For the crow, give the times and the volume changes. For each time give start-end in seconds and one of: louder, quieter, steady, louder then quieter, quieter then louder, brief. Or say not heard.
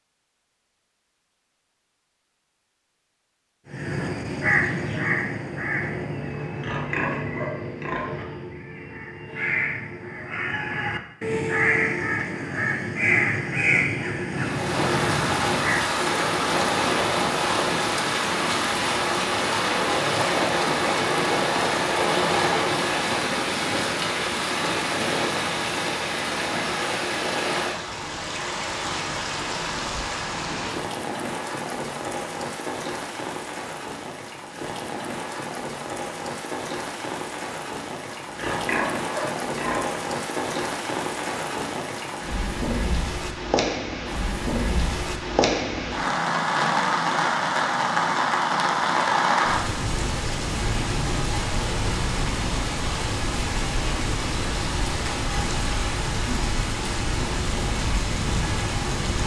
3.7-15.8 quieter then louder.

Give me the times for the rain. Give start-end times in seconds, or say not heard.
14.3-59.2.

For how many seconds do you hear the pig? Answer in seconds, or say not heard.
4 s.